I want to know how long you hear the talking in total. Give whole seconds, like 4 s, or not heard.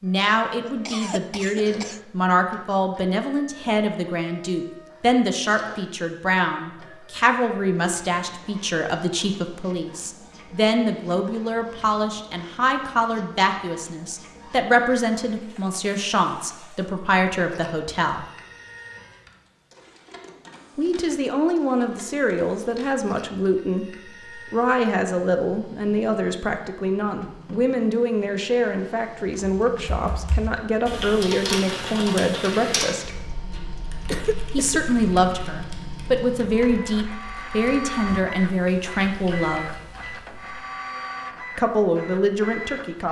37 s.